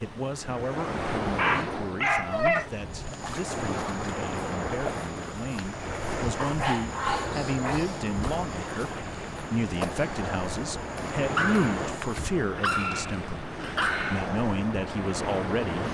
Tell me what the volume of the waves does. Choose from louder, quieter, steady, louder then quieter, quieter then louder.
steady.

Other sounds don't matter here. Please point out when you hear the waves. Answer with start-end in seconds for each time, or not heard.
0.0-15.8.